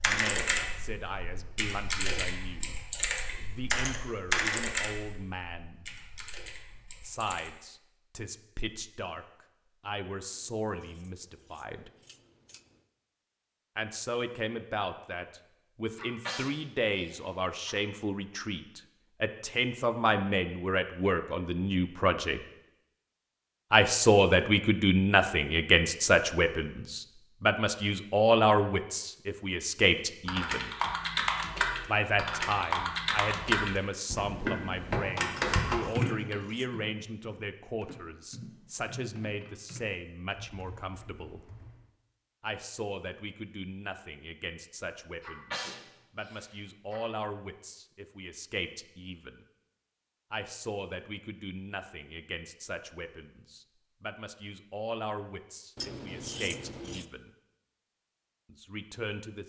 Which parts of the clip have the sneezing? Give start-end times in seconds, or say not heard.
15.9-17.8, 45.2-47.0.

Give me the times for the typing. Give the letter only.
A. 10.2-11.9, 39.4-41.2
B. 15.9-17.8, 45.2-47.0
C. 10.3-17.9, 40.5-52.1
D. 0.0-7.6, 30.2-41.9
D.